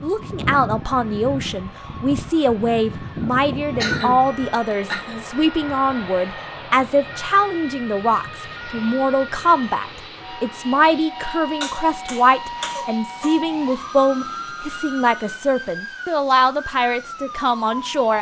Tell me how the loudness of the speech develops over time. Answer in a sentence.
The loudness of the speech stays about the same.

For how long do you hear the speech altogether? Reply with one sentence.
You can hear the speech for 18 seconds altogether.